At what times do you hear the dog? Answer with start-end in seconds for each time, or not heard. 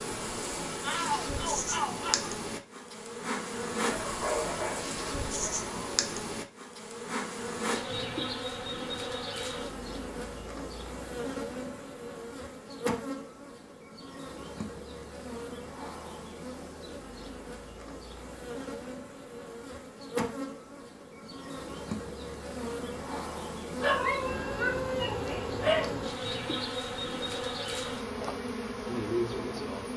3.9-5.8, 23.8-25.9.